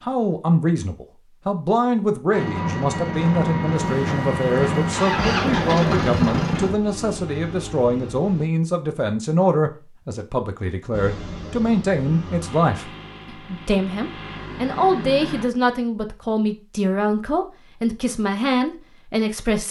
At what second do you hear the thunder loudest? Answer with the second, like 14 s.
6 s.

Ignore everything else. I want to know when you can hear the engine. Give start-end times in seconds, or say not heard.
2.3-8.4, 10.9-15.5.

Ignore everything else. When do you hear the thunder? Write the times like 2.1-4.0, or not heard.
3.8-6.8.